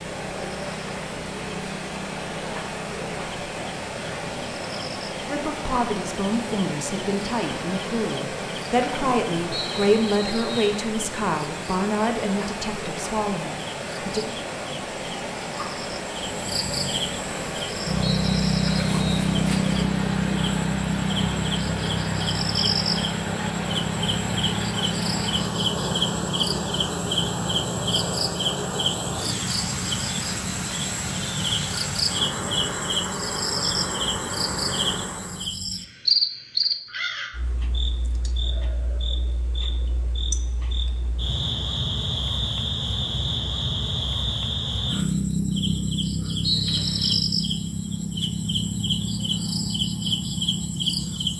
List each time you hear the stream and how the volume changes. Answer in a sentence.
You can hear the stream from 0.0 to 35.5 s, at a steady volume.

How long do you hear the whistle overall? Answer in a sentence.
The whistle can be heard for 3 seconds in total.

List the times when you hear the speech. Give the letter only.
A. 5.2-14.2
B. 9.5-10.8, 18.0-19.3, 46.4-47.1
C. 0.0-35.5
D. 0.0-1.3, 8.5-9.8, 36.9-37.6
A.